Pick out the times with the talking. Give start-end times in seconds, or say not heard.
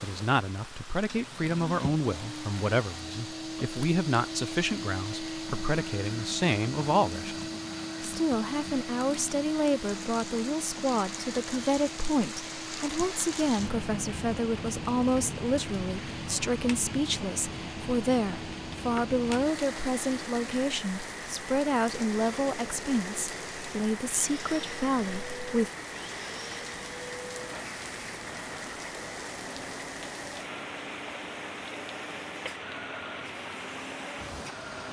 0.0-25.7.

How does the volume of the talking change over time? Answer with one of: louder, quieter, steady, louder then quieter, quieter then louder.
steady.